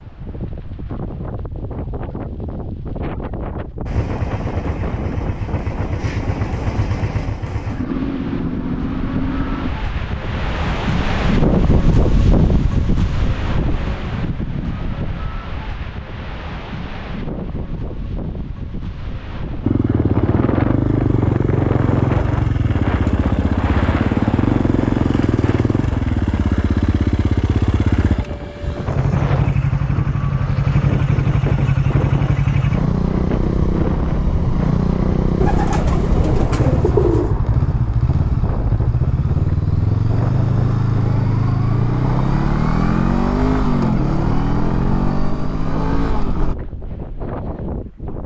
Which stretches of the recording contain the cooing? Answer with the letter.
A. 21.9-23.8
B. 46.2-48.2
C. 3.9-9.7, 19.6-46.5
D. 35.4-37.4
D.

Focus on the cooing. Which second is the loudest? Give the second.
37 s.